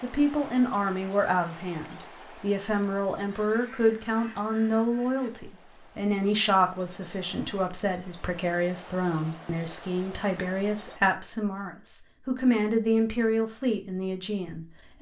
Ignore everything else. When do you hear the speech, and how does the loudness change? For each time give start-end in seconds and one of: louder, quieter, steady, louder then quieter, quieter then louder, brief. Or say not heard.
0.0-14.9 steady.